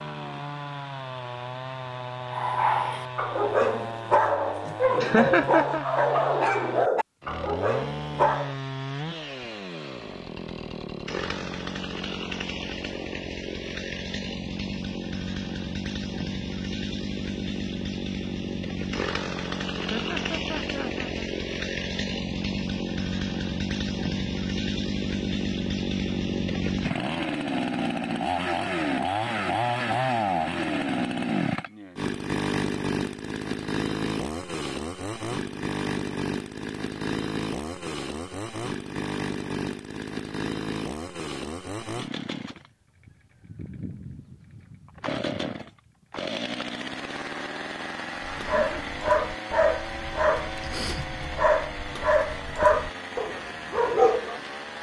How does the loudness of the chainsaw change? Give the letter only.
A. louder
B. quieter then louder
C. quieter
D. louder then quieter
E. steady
D.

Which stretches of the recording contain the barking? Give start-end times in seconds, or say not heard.
2.3-8.6, 48.2-54.4.